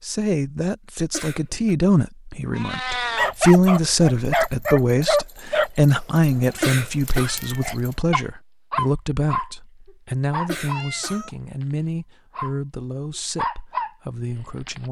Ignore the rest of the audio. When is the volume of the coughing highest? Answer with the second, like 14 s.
7 s.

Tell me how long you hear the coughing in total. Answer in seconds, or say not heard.
2 s.